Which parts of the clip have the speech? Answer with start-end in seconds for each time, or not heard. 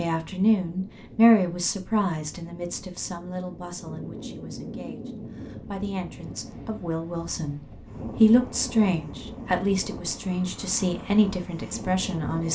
0.0-12.4.